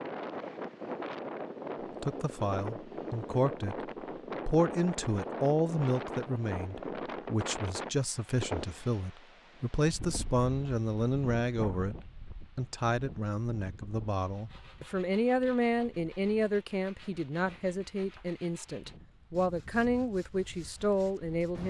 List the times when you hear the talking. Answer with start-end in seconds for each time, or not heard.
2.0-21.6.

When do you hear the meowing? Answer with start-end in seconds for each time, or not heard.
not heard.